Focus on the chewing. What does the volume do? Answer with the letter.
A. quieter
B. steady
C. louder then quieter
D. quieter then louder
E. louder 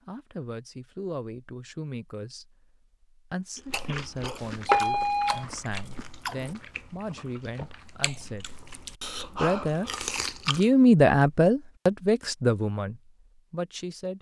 D.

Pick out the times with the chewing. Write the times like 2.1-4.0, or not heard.
3.5-10.7.